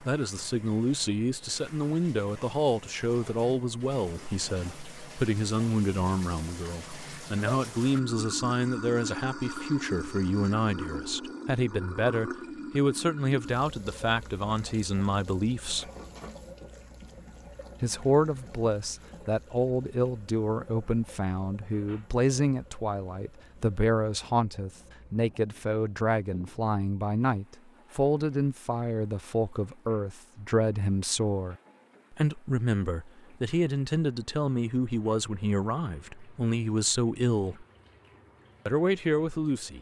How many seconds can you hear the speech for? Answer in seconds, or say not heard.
37 s.